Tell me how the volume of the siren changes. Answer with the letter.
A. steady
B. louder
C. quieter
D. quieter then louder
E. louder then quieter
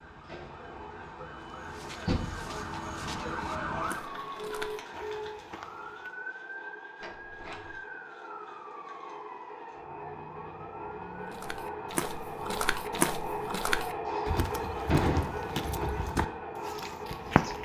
C.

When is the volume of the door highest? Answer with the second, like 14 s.
15 s.